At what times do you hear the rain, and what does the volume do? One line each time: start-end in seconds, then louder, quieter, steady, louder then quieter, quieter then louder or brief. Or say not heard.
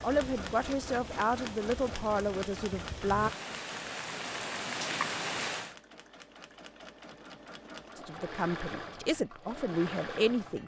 0.0-5.8 louder.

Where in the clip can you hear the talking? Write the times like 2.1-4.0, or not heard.
0.0-3.3, 8.0-10.6.